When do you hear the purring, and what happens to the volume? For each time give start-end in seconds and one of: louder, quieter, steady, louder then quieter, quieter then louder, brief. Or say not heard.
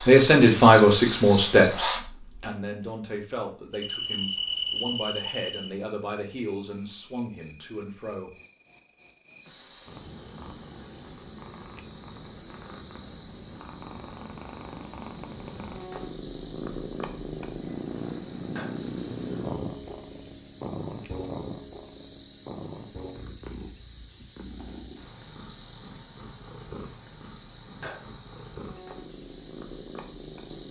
9.4-30.6 louder then quieter.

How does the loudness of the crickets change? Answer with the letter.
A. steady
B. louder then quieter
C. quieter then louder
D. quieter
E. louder
A.